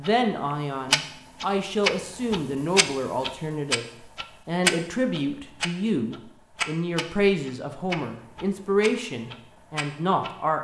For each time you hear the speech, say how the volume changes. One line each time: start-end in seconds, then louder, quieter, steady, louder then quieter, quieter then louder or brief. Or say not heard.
0.0-10.6 steady.